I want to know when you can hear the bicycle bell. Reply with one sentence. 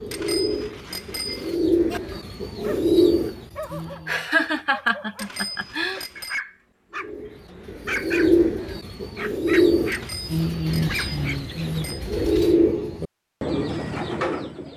The bicycle bell can be heard from 0.1 to 1.6 s, from 5.2 to 6.4 s and from 9.9 to 12.1 s.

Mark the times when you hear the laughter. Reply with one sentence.
You can hear the laughter from 4.0 to 6.0 s.